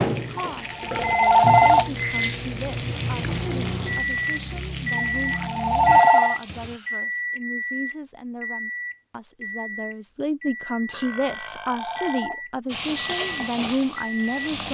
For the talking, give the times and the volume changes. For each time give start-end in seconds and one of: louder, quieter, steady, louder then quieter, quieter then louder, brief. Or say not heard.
0.1-14.6 louder.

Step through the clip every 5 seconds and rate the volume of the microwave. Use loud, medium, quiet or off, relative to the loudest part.
loud, loud, medium.